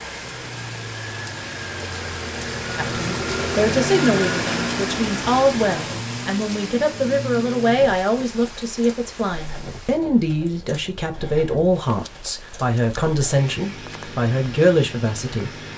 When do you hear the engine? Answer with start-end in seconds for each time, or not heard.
0.0-15.7.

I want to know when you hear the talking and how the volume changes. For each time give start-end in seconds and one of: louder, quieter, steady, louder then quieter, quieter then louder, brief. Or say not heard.
2.8-15.5 steady.